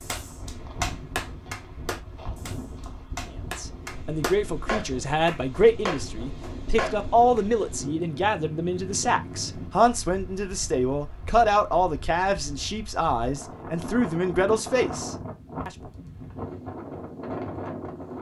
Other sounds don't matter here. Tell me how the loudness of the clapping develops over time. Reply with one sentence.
The volume of the clapping goes down, then up.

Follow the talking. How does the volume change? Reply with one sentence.
The loudness of the talking stays about the same.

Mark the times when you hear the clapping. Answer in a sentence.
You can hear the clapping from 0.0 to 7.5 s.